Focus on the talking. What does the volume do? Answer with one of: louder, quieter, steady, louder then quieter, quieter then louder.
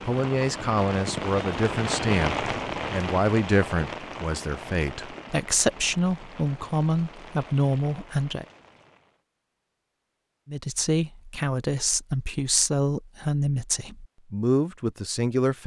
steady.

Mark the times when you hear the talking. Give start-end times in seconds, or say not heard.
0.0-8.4, 10.4-15.6.